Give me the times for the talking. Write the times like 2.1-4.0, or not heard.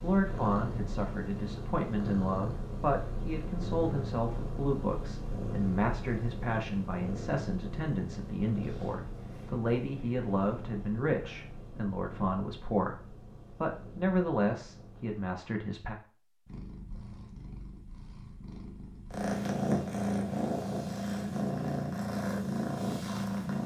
0.0-15.9.